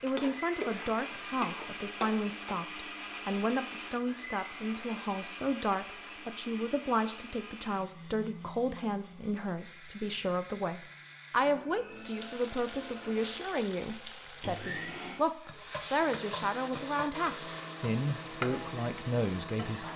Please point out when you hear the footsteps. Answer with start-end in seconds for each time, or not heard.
not heard.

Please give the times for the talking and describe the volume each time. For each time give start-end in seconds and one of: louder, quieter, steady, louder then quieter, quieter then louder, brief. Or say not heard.
0.0-19.9 steady.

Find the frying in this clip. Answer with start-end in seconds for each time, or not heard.
0.0-2.6, 11.9-19.9.